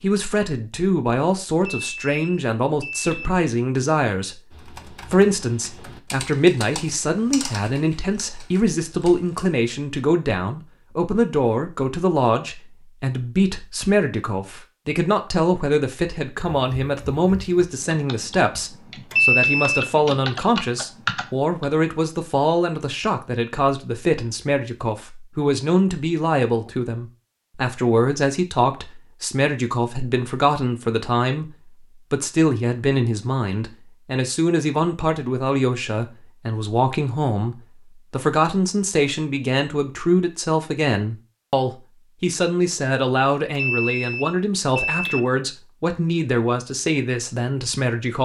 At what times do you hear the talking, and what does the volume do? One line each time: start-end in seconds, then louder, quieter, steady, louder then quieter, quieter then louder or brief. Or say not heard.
0.0-48.1 steady.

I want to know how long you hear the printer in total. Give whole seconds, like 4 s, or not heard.
not heard.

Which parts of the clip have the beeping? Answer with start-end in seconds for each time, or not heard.
1.6-3.3, 19.1-19.9, 43.5-45.2.